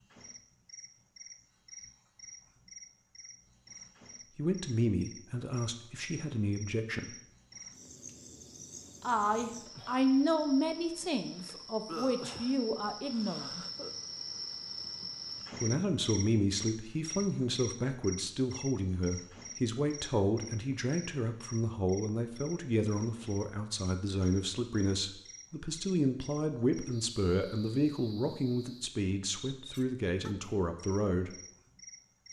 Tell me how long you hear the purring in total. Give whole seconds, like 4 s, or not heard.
not heard.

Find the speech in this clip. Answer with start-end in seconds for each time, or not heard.
4.3-7.2, 9.0-13.7, 15.6-31.4.